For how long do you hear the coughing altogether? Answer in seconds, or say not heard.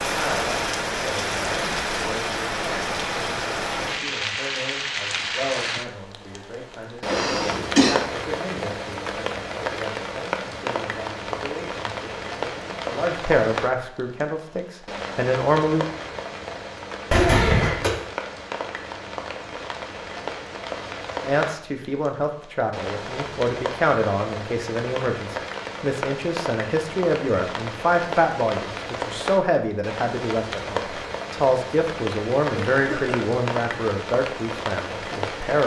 2 s.